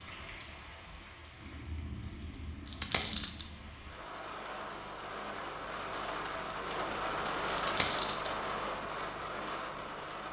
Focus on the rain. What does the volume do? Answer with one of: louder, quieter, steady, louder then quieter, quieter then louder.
louder.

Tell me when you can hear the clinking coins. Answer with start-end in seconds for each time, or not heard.
2.6-3.5, 7.5-8.3.